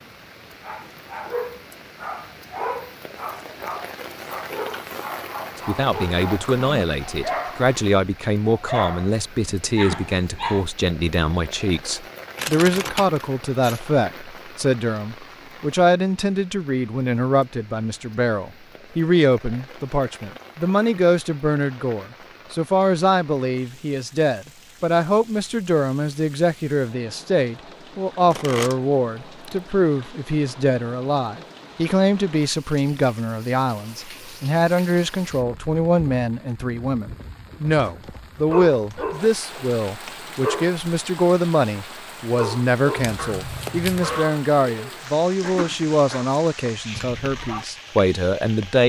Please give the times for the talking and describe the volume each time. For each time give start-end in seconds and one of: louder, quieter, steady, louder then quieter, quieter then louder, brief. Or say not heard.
5.7-48.8 steady.